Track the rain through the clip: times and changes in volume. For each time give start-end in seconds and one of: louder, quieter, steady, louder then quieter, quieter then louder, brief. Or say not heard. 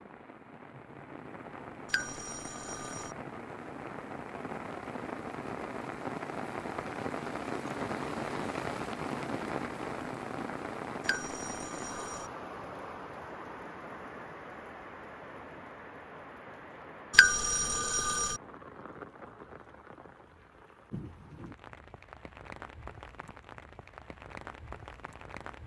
0.0-25.6 louder then quieter.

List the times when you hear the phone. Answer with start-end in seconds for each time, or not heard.
1.9-3.1, 11.1-12.3, 17.1-18.4.